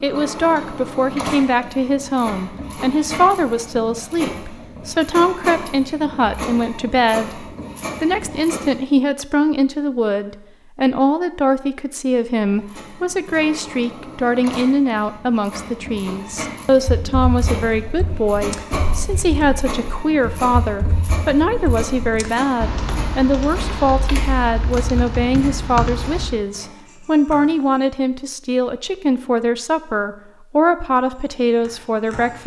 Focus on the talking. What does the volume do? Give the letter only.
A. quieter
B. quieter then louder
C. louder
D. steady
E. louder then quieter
D.